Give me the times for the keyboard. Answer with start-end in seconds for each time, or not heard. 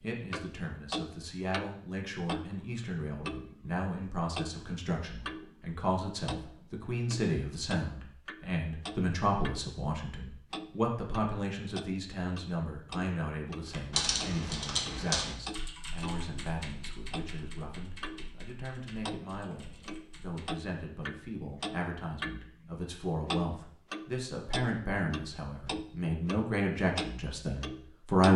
13.7-20.6.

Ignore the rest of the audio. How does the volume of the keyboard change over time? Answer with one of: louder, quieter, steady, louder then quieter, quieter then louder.
quieter.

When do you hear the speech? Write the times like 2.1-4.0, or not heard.
0.0-28.3.